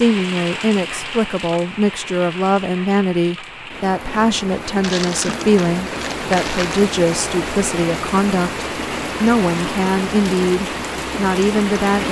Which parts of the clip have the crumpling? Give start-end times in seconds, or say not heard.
4.8-6.8.